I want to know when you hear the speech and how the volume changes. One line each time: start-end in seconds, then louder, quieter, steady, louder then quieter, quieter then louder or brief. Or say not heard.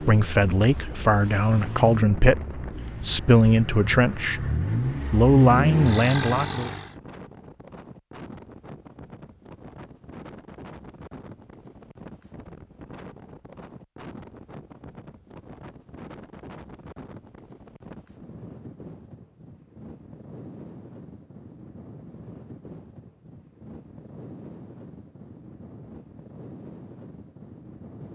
0.0-4.5 steady
5.1-6.7 brief.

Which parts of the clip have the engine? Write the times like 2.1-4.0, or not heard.
0.0-7.0.